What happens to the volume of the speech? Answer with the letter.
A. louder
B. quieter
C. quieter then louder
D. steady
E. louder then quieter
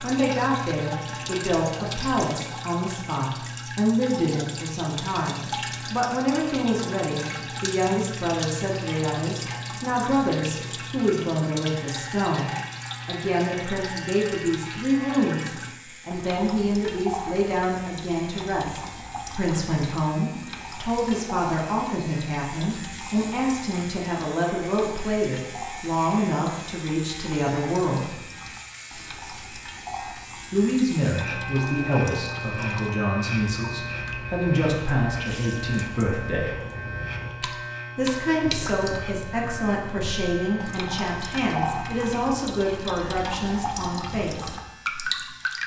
D.